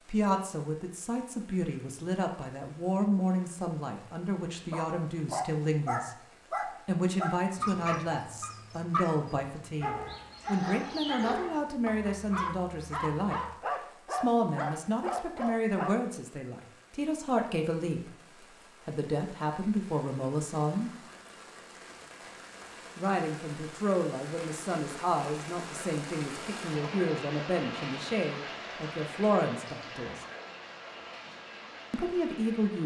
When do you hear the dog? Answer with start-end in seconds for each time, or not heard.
4.7-15.9.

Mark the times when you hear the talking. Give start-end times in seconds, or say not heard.
0.1-6.2, 6.8-20.9, 22.9-30.2, 31.9-32.8.